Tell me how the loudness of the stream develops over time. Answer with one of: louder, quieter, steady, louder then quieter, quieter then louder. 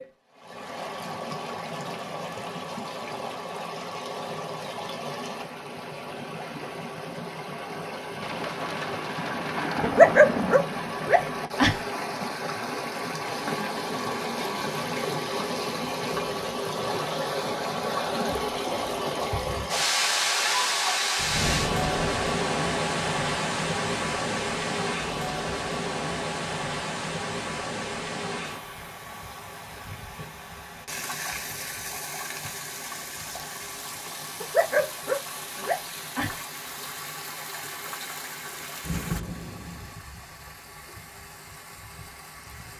louder then quieter.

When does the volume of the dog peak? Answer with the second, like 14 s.
10 s.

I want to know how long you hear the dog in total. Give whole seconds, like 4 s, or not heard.
4 s.